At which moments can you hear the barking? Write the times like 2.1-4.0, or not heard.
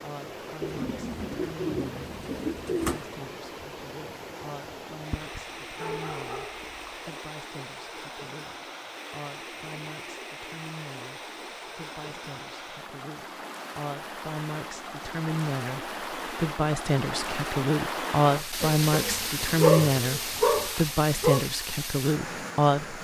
5.1-7.0, 18.9-21.4.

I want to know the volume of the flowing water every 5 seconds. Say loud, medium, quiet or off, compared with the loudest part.
medium, medium, medium, loud, loud.